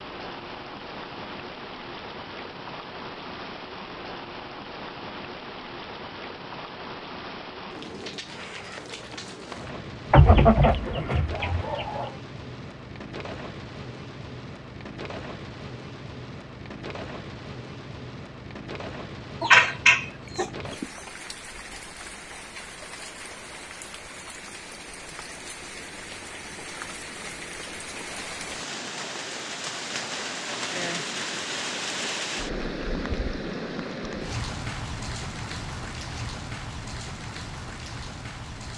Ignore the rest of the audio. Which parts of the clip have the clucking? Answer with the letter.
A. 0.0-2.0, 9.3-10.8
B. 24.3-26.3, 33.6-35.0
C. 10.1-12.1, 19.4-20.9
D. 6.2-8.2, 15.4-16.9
C.